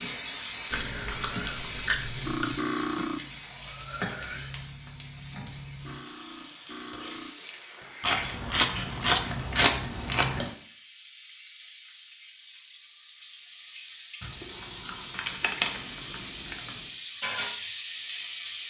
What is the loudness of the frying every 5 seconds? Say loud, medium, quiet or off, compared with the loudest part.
loud, medium, medium, loud.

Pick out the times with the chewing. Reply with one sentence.
You can hear the chewing from 0.7 to 2.5 s, from 8.0 to 10.6 s and from 14.2 to 16.7 s.